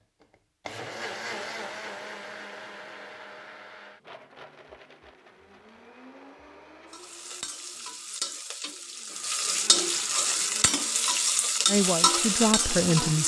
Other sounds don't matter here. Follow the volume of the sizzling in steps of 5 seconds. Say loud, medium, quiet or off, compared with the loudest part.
off, medium, loud.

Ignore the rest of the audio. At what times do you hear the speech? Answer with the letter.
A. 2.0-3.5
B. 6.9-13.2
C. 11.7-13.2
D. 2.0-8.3
C.